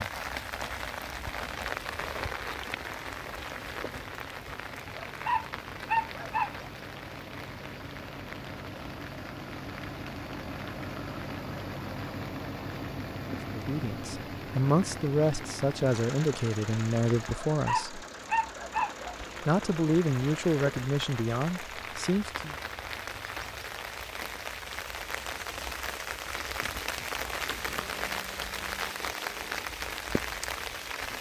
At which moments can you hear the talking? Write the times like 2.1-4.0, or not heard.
13.4-18.1, 19.4-22.6.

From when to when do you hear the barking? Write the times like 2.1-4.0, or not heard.
4.8-6.7, 17.4-19.1.